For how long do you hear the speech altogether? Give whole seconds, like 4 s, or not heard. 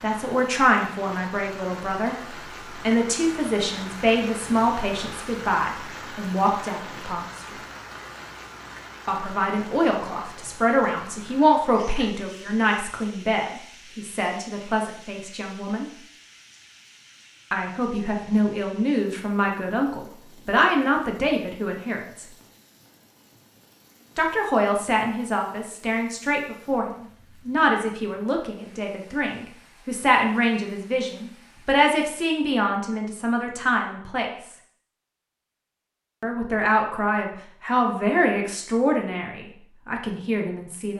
33 s.